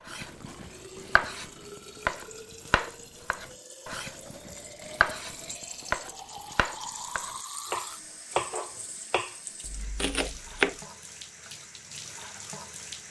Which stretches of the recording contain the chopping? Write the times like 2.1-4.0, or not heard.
0.1-10.8.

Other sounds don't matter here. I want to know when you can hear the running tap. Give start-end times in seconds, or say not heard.
0.1-13.0.